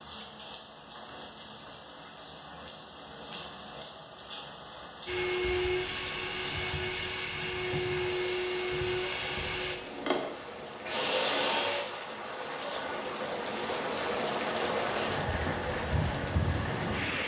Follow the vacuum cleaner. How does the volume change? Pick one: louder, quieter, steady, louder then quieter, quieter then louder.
steady.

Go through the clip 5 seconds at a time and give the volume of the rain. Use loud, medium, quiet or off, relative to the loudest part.
quiet, quiet, loud, loud.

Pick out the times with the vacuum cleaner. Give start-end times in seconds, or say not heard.
5.0-11.8.